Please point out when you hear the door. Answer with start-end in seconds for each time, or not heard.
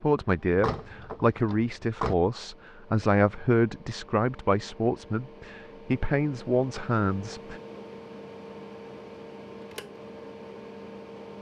0.5-2.1.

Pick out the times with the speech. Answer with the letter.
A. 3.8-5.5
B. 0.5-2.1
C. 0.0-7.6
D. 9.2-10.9
C.